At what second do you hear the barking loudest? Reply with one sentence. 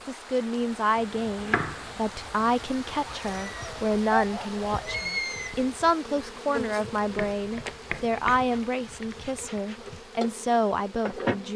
The volume of the barking peaks at 5 seconds.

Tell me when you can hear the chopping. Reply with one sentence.
You can hear the chopping from 0.9 to 2.5 s and from 7.2 to 8.5 s.